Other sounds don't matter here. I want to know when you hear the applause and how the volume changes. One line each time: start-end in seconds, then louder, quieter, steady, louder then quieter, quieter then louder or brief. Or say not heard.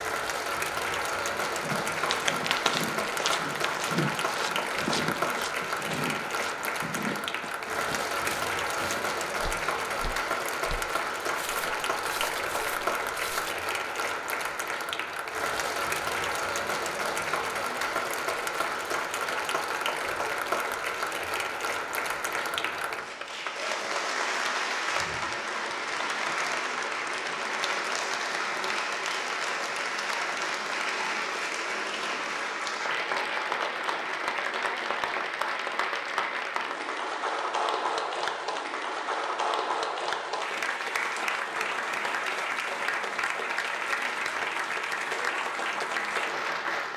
0.0-46.9 steady.